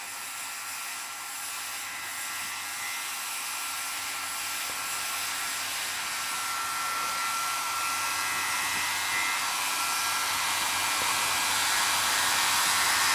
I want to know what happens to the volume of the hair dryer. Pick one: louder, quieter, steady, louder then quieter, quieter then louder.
louder.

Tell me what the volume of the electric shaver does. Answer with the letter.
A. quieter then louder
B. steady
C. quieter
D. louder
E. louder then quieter
D.